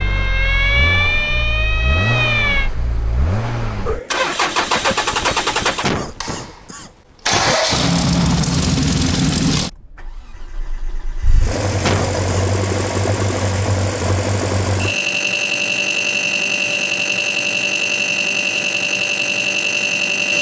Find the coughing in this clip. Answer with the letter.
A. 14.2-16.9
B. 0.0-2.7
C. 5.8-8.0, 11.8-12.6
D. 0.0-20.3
C.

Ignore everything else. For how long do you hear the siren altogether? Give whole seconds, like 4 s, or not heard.
3 s.